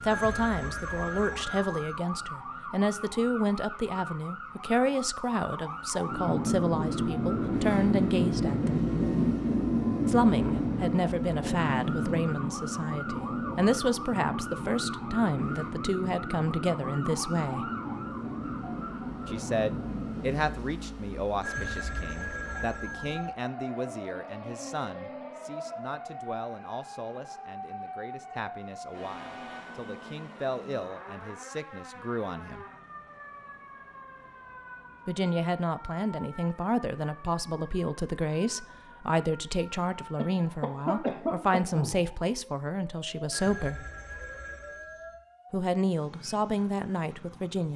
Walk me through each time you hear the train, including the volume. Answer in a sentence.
You can hear the train from 6.0 to 20.6 s, getting quieter.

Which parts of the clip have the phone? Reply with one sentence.
The phone can be heard from 0.1 to 1.9 s, from 21.4 to 23.3 s and from 43.3 to 45.1 s.